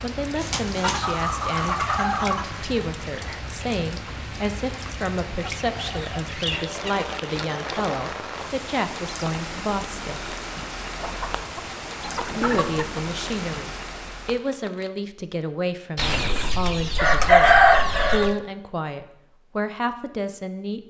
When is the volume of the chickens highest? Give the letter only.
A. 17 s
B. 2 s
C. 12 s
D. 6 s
A.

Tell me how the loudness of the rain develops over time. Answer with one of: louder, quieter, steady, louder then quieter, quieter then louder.
steady.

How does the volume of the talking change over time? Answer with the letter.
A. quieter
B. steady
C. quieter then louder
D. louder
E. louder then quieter
B.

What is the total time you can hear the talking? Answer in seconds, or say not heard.
19 s.